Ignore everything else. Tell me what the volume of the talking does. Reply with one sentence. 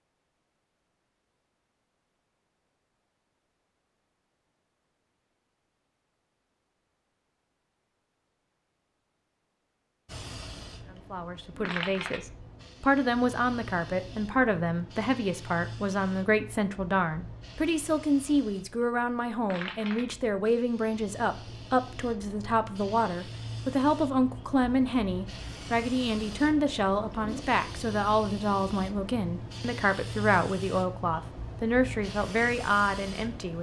The loudness of the talking stays about the same.